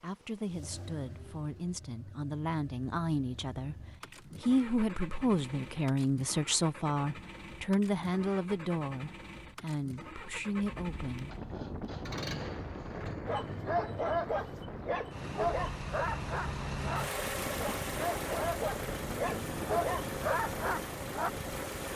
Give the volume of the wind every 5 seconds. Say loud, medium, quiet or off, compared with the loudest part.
off, off, loud, loud, loud.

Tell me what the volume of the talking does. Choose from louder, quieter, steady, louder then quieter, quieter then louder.
louder then quieter.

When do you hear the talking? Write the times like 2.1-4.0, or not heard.
0.0-3.8, 4.4-11.3.